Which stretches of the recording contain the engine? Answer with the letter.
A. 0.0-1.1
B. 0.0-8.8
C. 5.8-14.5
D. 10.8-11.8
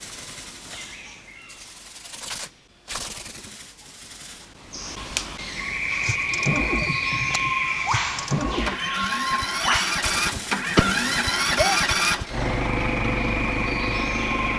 C.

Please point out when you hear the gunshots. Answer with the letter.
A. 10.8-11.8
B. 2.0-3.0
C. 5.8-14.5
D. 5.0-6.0
A.